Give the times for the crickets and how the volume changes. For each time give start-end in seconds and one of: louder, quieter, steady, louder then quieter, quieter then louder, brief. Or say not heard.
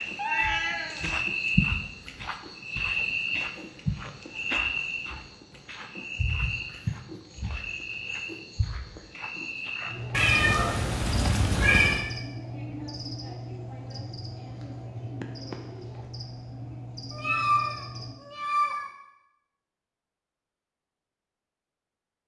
0.0-18.1 quieter.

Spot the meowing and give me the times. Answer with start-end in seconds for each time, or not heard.
0.1-1.1, 10.1-12.1, 17.1-18.9.